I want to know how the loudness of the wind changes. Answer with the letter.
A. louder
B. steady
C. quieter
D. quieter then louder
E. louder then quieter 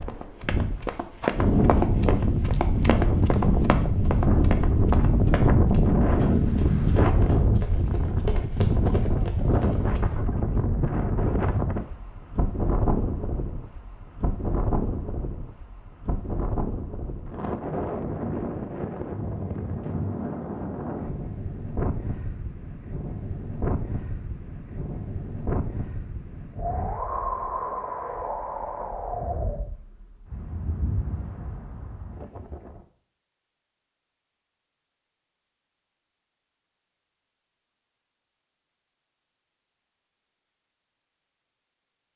C.